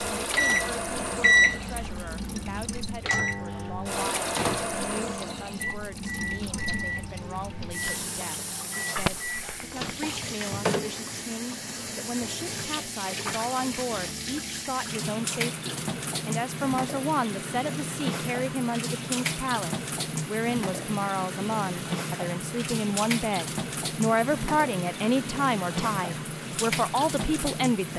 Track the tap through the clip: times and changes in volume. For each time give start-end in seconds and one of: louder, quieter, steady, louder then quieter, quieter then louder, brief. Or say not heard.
0.0-27.9 steady.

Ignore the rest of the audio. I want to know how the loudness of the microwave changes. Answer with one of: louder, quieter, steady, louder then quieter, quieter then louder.
quieter.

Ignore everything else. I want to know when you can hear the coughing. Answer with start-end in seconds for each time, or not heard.
8.9-9.9.